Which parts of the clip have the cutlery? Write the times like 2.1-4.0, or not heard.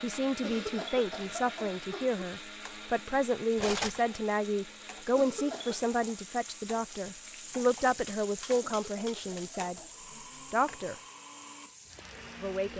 3.5-4.0, 7.8-9.6.